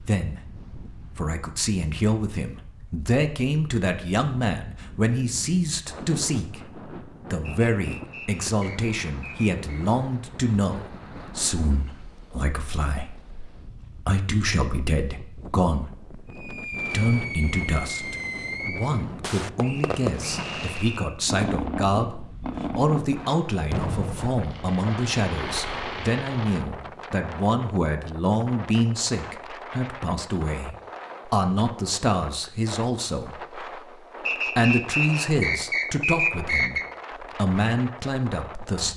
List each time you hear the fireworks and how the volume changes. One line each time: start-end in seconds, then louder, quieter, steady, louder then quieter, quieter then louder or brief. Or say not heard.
16.3-27.0 steady.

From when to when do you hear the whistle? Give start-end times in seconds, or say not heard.
7.5-9.8, 19.6-21.1, 34.2-36.9.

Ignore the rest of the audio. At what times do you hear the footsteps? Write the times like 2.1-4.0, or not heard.
not heard.